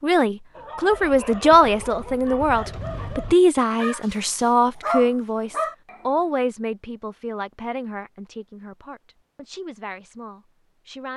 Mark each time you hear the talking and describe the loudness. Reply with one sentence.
The talking can be heard from 0.0 to 11.1 s, getting quieter.